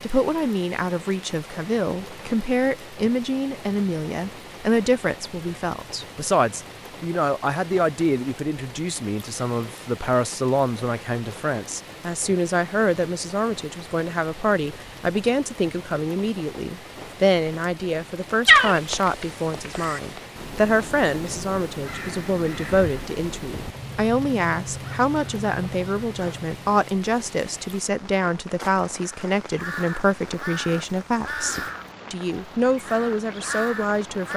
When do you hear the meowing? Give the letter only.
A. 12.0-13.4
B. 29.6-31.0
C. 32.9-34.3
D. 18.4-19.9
D.